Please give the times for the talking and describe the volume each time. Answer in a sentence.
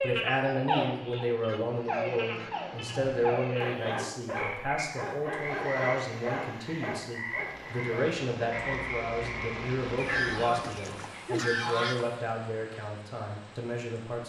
The talking can be heard from 0.0 to 14.2 s, at a steady volume.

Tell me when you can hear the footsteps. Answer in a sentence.
You can't hear the footsteps here.